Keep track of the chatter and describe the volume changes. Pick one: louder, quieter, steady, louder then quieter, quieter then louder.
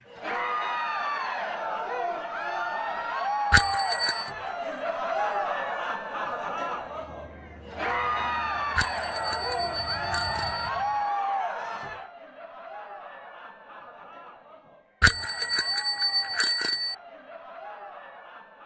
quieter.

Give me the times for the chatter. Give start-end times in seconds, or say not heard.
0.1-18.6.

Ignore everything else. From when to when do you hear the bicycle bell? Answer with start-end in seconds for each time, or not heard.
3.5-4.3, 8.8-10.7, 15.0-16.9.